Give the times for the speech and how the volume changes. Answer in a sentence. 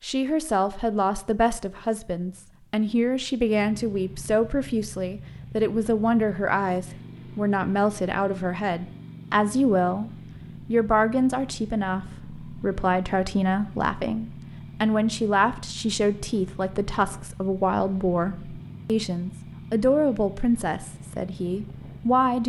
The speech can be heard from 0.0 to 22.4 s, at a steady volume.